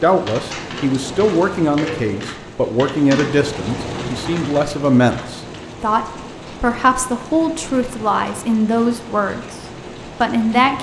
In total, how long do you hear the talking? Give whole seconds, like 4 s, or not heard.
10 s.